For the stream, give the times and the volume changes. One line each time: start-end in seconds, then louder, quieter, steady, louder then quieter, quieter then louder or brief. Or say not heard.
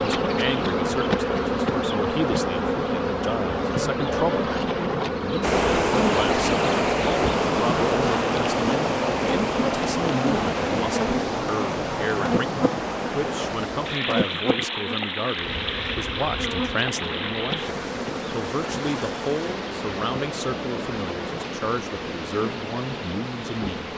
5.4-23.9 quieter.